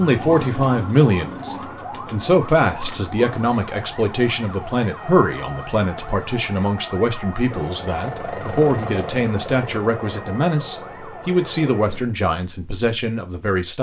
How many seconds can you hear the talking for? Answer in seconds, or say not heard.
14 s.